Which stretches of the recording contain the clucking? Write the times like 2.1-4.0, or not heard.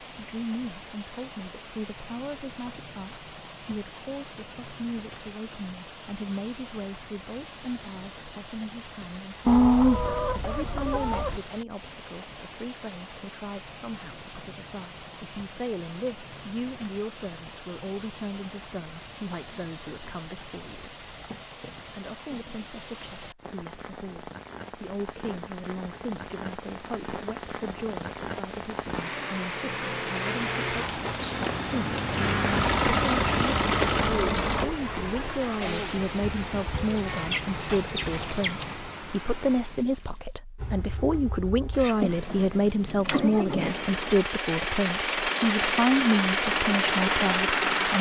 9.4-11.4, 36.7-38.8.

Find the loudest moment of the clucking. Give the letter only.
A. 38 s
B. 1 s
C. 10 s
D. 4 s
C.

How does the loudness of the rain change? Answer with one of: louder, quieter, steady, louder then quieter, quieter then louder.
louder.